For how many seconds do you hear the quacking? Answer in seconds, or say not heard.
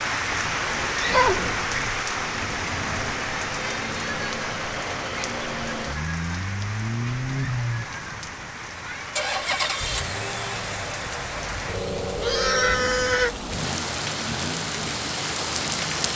not heard.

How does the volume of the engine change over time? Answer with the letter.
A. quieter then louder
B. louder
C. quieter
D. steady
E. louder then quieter
E.